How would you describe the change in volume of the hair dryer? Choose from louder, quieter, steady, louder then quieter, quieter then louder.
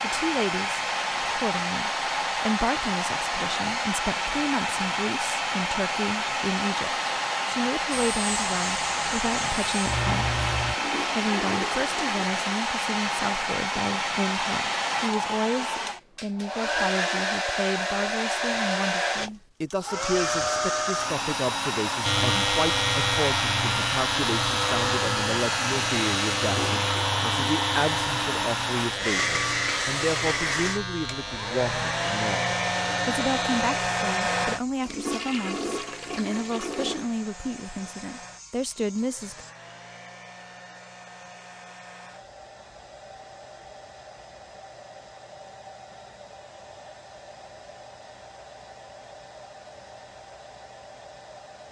quieter.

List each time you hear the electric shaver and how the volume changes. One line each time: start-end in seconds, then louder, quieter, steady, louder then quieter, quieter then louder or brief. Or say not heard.
7.9-10.8 brief
22.0-39.5 quieter.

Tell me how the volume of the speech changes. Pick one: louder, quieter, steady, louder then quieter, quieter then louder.
steady.